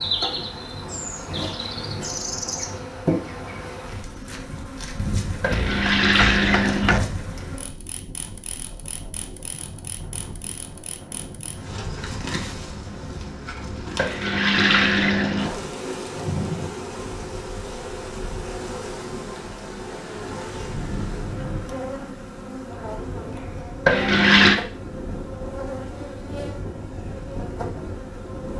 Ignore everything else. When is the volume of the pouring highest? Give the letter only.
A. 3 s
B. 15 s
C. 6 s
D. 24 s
D.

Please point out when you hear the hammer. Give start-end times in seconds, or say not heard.
5.5-7.0.